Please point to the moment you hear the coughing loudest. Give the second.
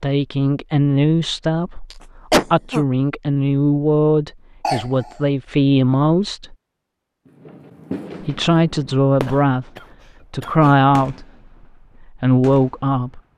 2 s.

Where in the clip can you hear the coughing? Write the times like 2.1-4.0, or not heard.
1.9-2.9, 4.6-5.2, 9.2-10.8.